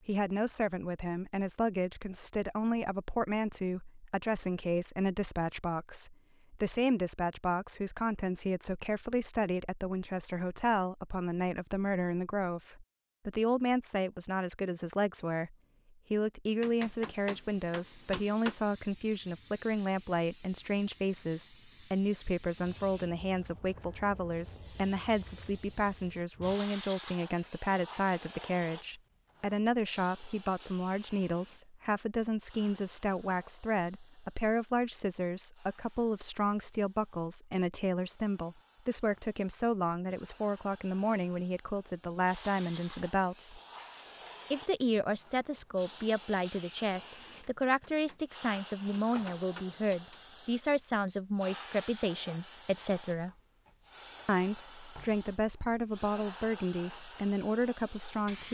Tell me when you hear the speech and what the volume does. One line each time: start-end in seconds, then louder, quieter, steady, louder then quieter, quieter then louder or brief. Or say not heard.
0.1-43.6 steady
44.5-53.3 steady
54.2-58.4 steady.